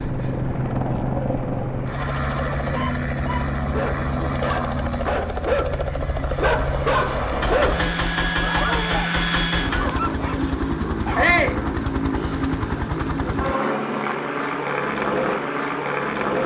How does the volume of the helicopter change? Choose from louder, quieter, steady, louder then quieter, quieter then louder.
steady.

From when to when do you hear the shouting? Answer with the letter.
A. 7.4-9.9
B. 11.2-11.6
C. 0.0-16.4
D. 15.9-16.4
B.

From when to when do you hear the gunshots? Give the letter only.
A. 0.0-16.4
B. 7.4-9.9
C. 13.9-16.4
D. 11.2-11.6
B.